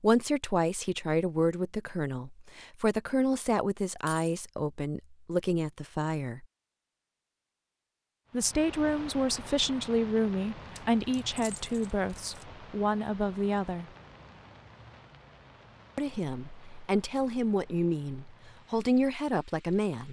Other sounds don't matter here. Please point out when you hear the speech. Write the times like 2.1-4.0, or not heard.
0.0-6.5, 8.3-13.8, 15.9-20.0.